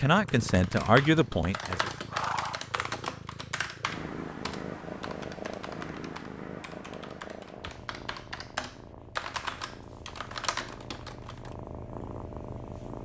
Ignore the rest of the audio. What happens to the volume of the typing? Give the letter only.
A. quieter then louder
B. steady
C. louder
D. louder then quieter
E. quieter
A.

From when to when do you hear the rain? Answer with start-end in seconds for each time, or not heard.
not heard.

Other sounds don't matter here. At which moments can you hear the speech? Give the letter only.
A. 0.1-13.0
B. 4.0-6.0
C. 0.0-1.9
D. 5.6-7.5
C.